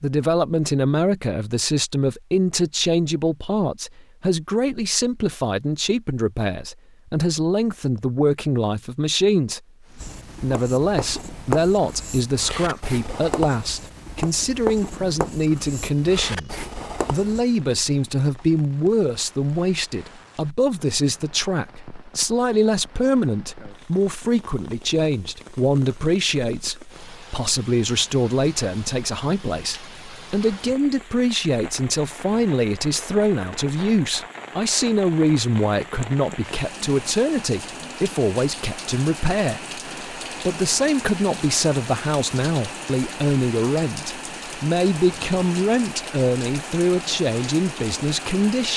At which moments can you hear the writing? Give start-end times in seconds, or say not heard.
9.9-17.4.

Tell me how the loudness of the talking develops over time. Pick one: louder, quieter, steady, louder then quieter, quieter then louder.
steady.